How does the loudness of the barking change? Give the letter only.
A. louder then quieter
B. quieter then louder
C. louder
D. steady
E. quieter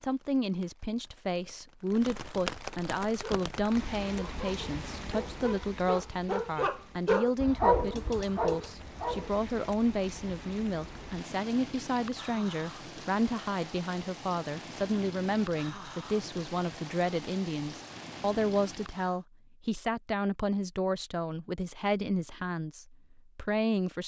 A.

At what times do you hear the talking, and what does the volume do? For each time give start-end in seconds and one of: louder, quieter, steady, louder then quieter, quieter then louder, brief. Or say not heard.
0.0-24.0 steady.